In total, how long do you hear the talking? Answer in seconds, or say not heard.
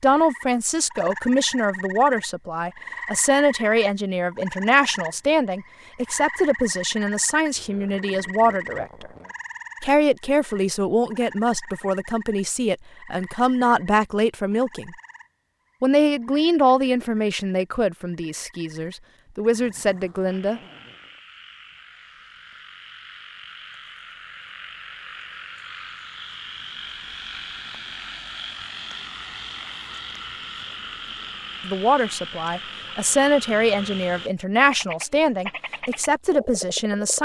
25 s.